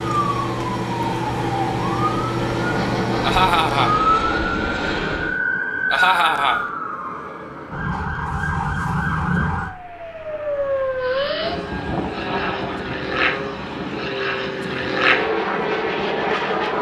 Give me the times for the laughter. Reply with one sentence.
The laughter can be heard from 3.2 to 4.0 s, from 5.9 to 6.6 s and from 12.1 to 12.8 s.